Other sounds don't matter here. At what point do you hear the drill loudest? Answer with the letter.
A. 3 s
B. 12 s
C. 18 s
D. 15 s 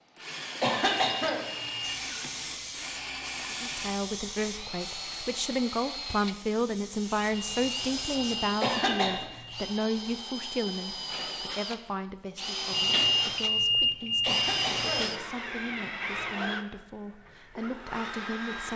D.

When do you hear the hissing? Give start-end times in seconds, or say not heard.
1.8-8.3.